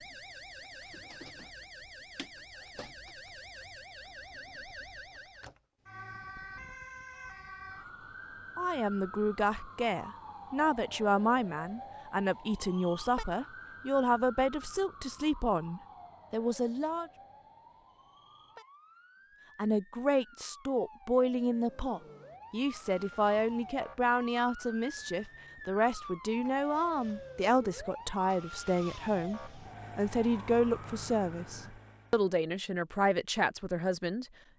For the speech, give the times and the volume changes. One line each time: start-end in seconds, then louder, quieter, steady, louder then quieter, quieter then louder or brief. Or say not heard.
8.6-17.1 steady
19.6-34.2 steady.